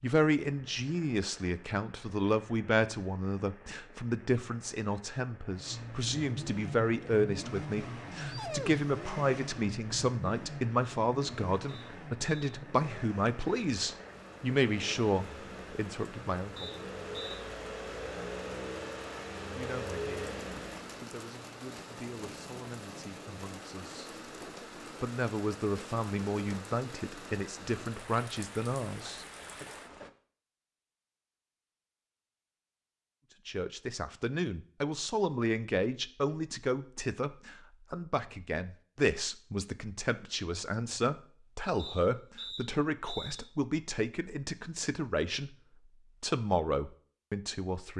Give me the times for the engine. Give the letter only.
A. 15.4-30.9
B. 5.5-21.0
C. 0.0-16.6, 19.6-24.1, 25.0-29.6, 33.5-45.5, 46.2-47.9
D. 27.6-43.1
B.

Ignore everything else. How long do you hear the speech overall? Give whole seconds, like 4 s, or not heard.
40 s.